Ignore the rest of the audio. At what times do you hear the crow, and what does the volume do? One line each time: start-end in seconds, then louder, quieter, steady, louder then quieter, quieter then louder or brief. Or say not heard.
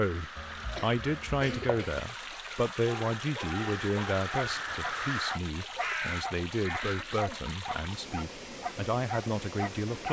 0.0-7.2 louder.